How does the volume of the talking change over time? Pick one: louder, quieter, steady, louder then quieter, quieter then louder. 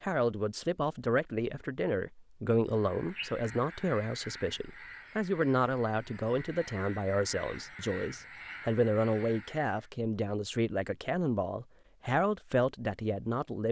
steady.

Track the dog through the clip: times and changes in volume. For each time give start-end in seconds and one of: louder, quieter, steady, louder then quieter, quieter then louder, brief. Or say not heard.
not heard.